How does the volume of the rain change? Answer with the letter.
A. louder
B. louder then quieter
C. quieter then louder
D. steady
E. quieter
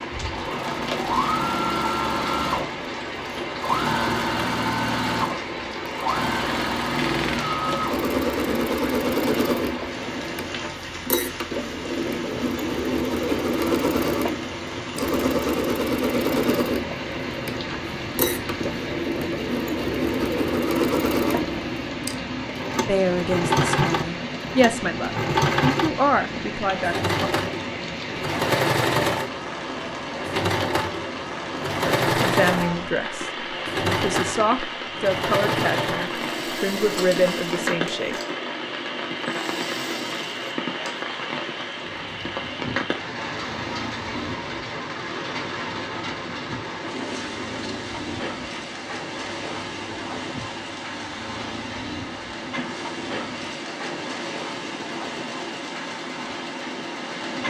D.